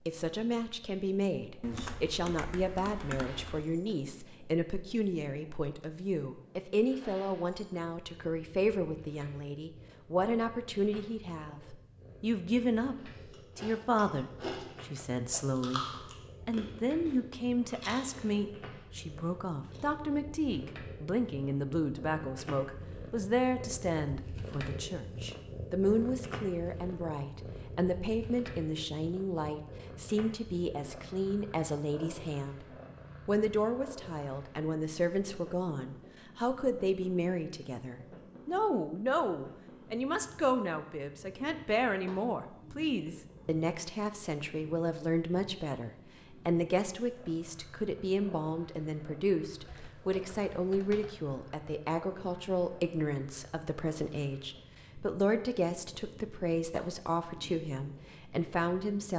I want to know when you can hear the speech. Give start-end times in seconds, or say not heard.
0.1-15.8, 16.4-32.6, 33.2-59.1.